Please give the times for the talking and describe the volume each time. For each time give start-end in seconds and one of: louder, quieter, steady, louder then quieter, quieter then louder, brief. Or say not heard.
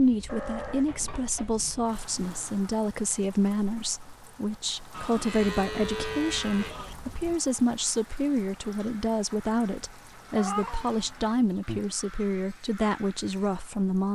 0.0-14.1 steady.